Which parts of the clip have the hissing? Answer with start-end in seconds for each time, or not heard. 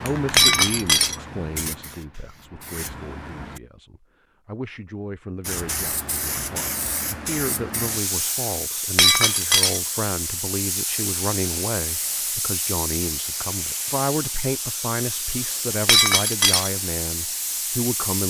0.0-3.6, 5.4-18.2.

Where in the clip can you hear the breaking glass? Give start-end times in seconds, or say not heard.
0.3-1.1, 8.9-9.8, 15.8-16.7.